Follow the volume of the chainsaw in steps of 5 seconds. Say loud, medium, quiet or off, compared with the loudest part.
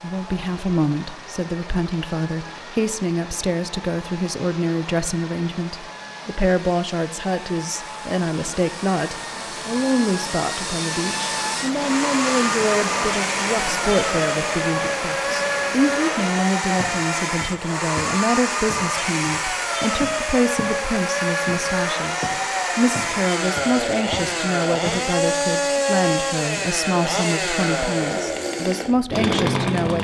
quiet, quiet, loud, loud, loud, loud.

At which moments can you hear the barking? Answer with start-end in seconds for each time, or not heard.
not heard.